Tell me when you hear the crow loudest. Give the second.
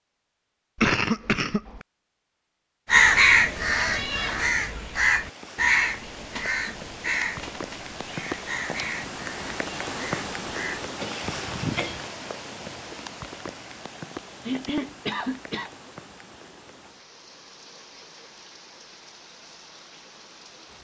3 s.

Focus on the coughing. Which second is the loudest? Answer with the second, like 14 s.
1 s.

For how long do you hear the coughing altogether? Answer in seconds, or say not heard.
3 s.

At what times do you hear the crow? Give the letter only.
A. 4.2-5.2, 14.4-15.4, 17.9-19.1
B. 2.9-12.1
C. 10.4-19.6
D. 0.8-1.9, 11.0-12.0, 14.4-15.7
B.